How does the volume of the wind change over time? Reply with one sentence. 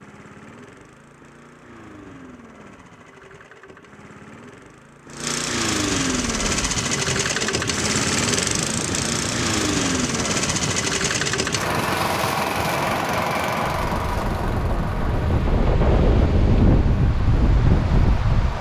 The volume of the wind goes up.